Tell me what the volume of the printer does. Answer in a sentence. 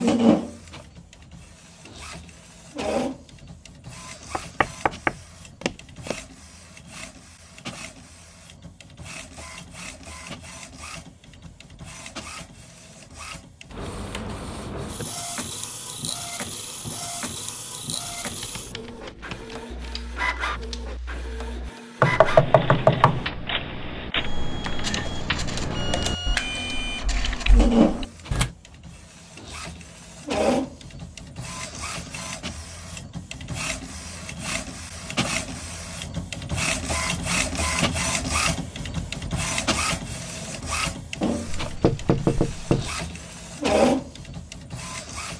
The volume of the printer goes up.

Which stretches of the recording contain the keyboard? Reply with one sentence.
The keyboard can be heard from 18.2 to 28.5 s.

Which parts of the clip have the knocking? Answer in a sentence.
The knocking can be heard from 4.3 to 6.2 s, from 22.0 to 23.3 s and from 41.6 to 42.9 s.